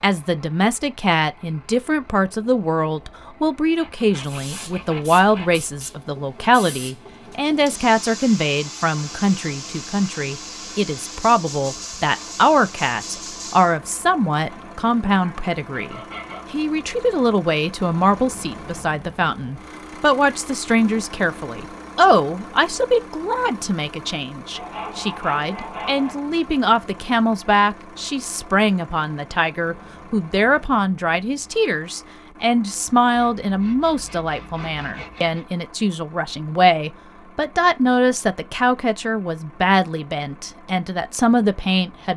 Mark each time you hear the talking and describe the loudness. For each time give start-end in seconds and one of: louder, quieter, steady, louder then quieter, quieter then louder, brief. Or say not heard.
0.0-42.1 steady.